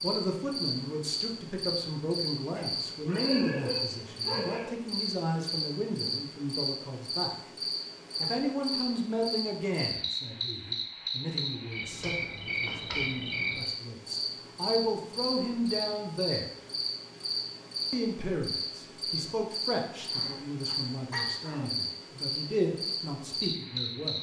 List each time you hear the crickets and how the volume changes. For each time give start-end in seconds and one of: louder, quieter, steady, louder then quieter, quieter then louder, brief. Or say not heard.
0.0-24.1 steady.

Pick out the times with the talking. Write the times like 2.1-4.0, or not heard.
0.0-7.3, 8.2-16.5, 17.9-24.1.